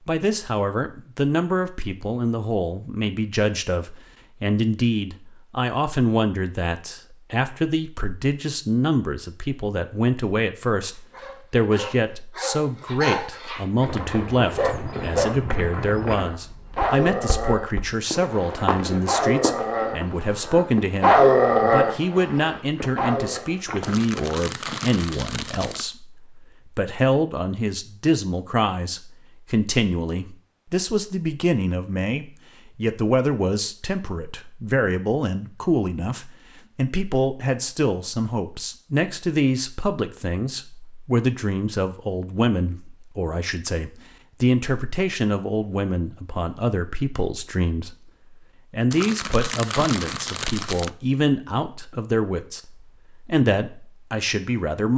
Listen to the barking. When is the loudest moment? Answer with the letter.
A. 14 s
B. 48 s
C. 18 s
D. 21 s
D.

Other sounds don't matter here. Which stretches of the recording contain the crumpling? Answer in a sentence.
The crumpling can be heard from 23.8 to 25.9 s and from 48.9 to 50.9 s.